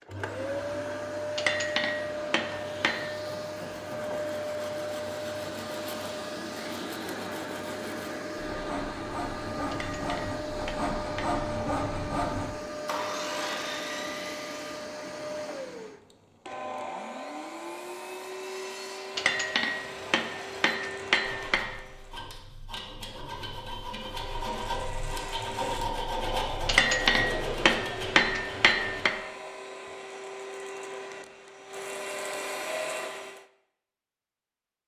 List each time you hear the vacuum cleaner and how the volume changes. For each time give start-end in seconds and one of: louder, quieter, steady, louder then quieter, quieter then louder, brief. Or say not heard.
0.0-22.3 quieter
23.9-33.5 louder.